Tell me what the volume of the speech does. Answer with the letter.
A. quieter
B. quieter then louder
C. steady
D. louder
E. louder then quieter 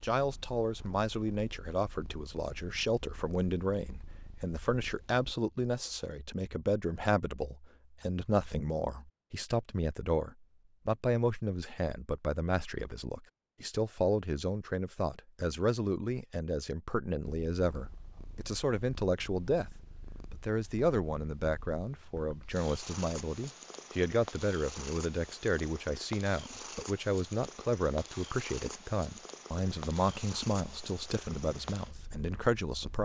C.